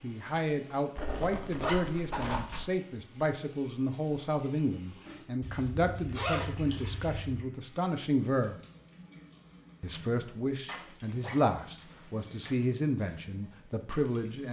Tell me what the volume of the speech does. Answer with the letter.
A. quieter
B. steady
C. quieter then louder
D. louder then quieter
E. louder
B.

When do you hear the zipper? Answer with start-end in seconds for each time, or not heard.
0.9-2.7, 5.4-7.2, 10.7-12.7.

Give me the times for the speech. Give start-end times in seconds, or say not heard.
0.0-8.6, 9.8-14.4.